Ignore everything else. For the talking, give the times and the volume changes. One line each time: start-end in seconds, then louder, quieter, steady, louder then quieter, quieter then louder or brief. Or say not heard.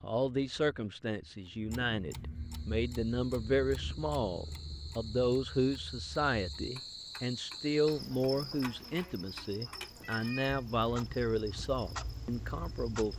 0.0-13.1 steady.